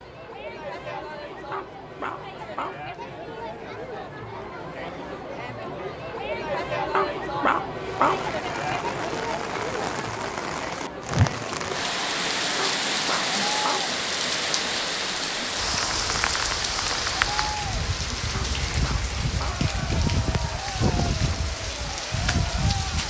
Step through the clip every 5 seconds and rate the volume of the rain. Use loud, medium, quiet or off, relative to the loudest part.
off, medium, loud, loud, loud.